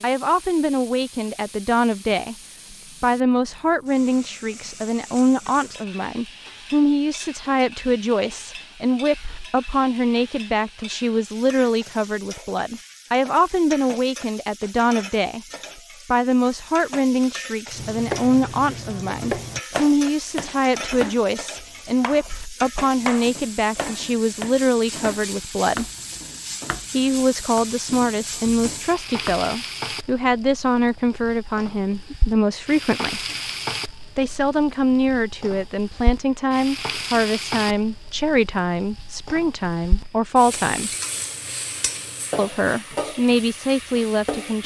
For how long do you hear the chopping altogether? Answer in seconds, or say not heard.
12 s.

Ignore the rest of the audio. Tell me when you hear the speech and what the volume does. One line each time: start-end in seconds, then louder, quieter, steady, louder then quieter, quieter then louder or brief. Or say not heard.
0.0-2.4 brief
3.0-15.4 steady
16.1-25.9 steady
26.9-33.2 steady
34.1-40.9 steady
42.4-44.6 brief.